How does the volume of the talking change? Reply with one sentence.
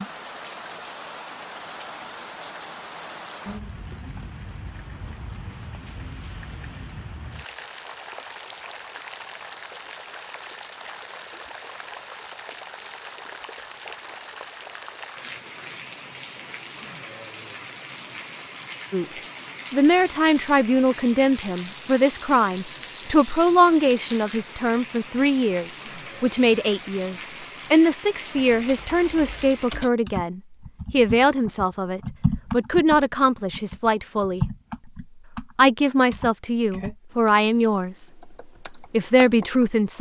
The loudness of the talking stays about the same.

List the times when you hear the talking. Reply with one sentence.
You can hear the talking from 18.9 to 34.5 s and from 35.5 to 39.9 s.